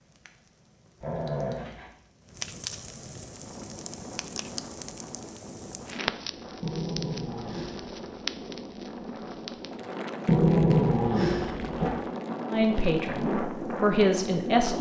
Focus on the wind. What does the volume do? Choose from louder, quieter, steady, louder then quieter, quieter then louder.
louder.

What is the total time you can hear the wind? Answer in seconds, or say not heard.
12 s.